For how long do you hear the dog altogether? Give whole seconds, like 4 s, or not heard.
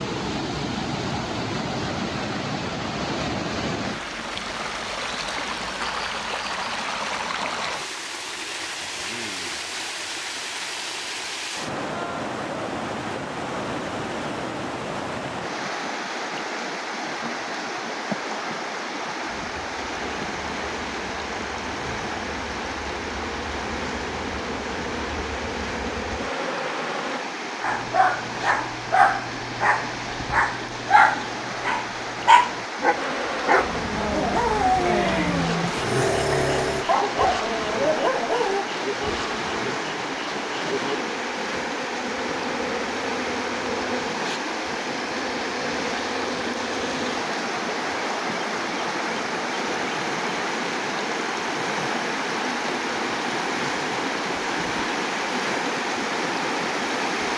11 s.